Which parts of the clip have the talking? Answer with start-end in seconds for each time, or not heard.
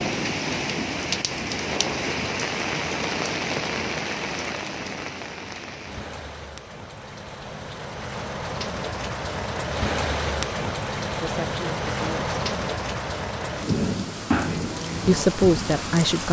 11.2-12.3, 15.1-16.2.